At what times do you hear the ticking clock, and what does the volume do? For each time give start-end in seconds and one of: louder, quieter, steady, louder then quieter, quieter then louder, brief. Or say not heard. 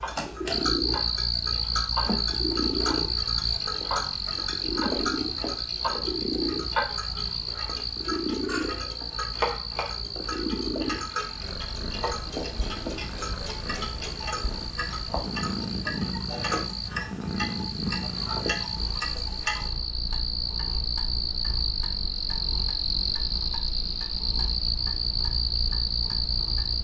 0.0-26.7 quieter.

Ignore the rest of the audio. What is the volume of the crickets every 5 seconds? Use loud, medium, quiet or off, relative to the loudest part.
loud, medium, medium, medium, loud, loud.